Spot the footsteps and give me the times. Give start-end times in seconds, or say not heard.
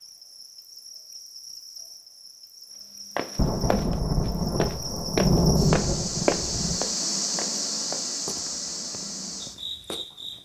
3.1-10.1.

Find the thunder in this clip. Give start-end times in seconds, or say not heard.
3.4-6.9.